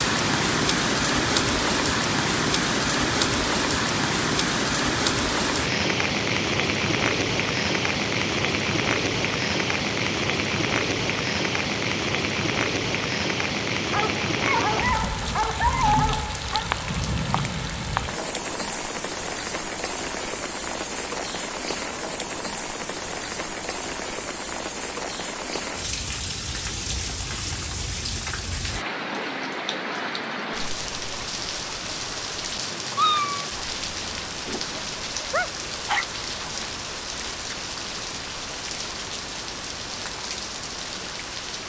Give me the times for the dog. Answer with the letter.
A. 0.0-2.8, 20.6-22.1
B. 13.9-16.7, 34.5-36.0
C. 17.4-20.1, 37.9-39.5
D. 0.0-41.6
B.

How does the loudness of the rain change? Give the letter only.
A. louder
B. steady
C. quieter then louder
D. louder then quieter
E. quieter
E.